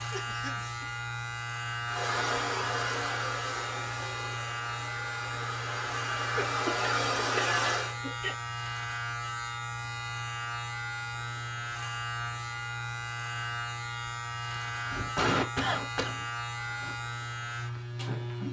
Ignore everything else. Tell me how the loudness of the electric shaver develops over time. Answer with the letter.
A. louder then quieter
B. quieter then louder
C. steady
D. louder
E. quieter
C.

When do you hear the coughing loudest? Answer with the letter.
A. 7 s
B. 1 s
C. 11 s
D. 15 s
D.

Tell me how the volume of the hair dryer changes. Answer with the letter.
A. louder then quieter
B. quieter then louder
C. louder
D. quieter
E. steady
B.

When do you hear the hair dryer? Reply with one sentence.
You can hear the hair dryer from 1.9 to 8.0 s.